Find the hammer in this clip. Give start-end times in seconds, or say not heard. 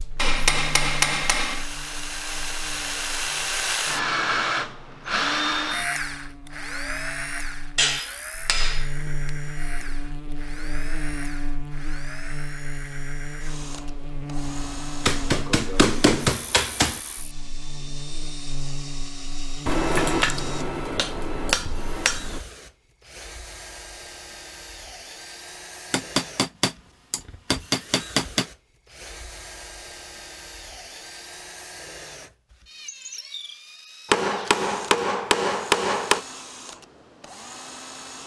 0.1-1.6, 7.8-9.3, 15.0-17.0, 19.6-22.4, 25.9-28.4, 34.0-36.2.